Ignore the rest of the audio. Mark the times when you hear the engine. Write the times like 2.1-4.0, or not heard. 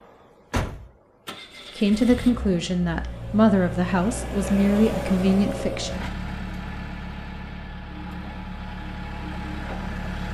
0.0-10.2.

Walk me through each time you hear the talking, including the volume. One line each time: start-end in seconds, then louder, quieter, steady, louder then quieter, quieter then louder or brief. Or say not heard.
1.8-5.9 steady.